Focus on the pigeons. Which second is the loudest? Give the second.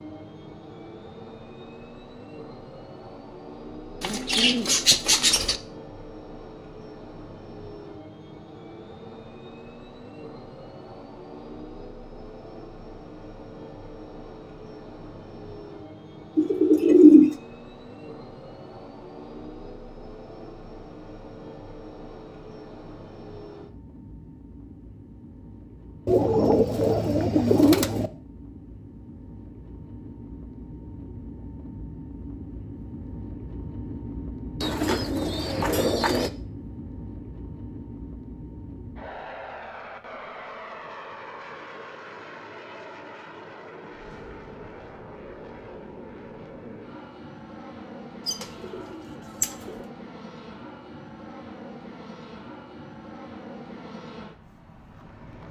17 s.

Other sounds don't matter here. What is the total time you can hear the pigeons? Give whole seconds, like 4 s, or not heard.
8 s.